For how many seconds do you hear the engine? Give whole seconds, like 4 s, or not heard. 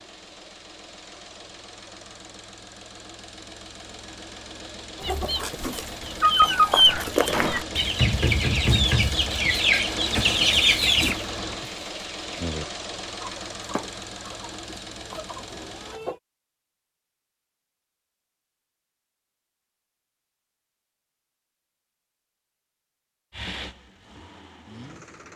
18 s.